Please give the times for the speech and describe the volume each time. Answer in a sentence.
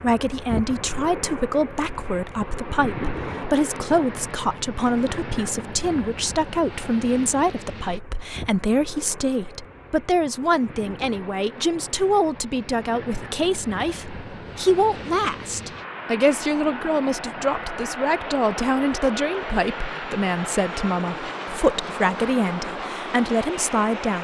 The speech can be heard from 0.0 to 24.2 s, at a steady volume.